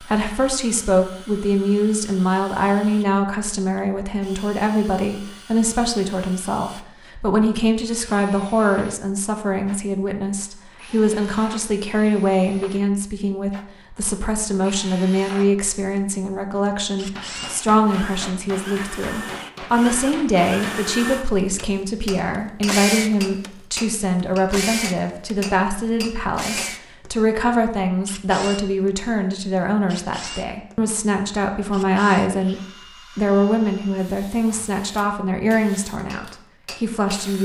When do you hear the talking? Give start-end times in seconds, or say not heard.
0.0-37.4.